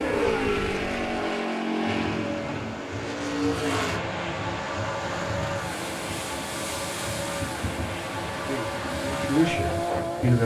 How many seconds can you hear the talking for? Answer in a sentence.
You can hear the talking for 2 seconds altogether.